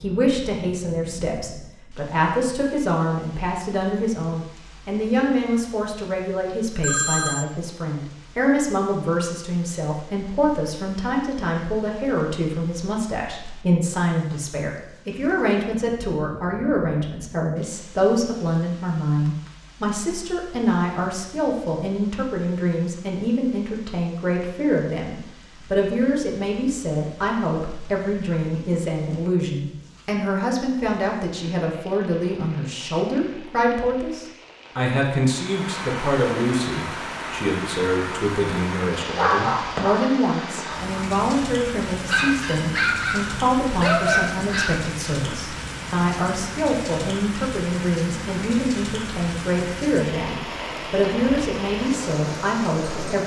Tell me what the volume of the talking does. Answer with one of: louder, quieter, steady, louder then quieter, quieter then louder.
steady.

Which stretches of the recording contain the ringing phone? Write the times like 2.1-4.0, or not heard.
6.8-7.5.